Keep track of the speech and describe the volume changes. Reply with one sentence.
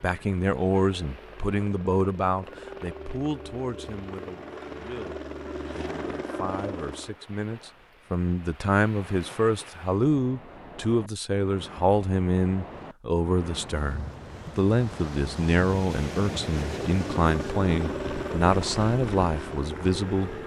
The loudness of the speech goes down, then up.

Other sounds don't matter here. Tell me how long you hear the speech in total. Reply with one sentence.
You can hear the speech for 20 seconds altogether.